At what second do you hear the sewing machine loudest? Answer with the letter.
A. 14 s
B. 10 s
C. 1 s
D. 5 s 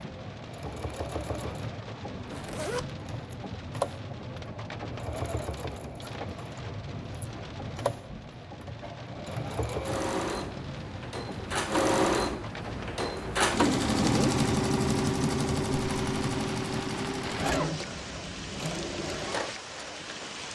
A.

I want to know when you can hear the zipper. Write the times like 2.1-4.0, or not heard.
2.2-2.9, 17.2-17.8.